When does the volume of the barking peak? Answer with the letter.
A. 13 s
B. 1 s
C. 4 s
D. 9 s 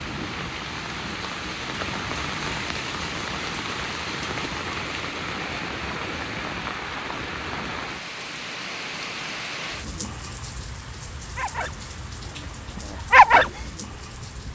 A.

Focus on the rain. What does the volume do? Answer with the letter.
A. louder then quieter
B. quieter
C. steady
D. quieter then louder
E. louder
B.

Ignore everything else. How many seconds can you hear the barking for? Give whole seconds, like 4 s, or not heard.
3 s.